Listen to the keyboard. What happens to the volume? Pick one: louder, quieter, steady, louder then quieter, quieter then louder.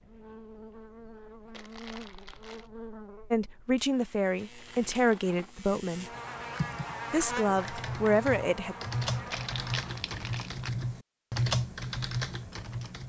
louder.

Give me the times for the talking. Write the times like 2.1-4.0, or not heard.
3.3-6.0, 7.1-8.8.